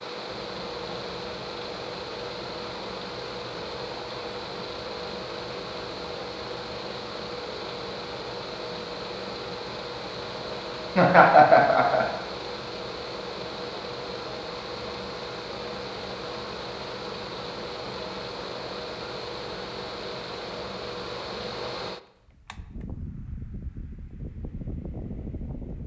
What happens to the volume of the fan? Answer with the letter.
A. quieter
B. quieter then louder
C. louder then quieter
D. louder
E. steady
E.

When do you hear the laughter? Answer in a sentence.
The laughter can be heard from 10.9 to 12.1 s.